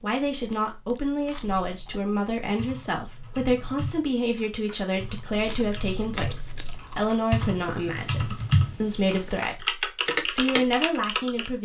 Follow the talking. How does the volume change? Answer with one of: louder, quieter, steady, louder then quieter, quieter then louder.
steady.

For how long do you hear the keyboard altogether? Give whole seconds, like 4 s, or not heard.
9 s.